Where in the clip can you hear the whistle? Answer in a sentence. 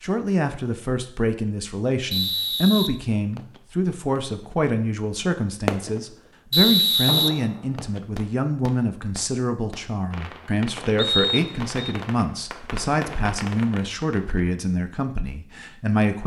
You can hear the whistle from 2.1 to 3.6 s, from 6.5 to 8.0 s and from 10.9 to 11.8 s.